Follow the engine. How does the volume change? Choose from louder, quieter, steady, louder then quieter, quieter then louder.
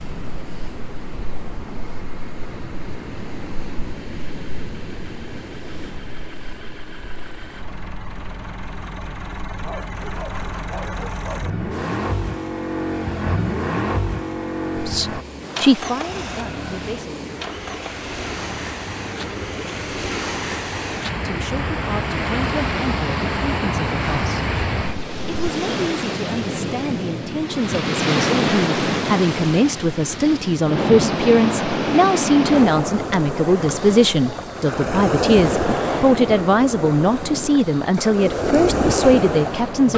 louder then quieter.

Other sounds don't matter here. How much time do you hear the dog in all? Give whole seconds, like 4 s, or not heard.
2 s.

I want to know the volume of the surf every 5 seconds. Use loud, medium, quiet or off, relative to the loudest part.
quiet, quiet, quiet, medium, loud, loud, loud, loud.